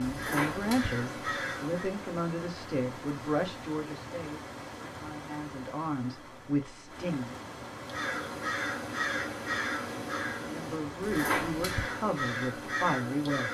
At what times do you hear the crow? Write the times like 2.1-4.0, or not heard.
0.0-1.9, 7.8-13.4.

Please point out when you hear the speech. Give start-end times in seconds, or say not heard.
0.0-7.3, 10.4-13.4.